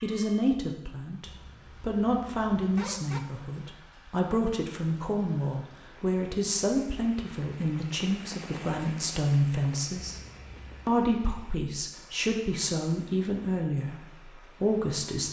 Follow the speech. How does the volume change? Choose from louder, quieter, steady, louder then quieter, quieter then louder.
steady.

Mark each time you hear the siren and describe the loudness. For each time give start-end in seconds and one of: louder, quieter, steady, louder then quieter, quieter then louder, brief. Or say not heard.
not heard.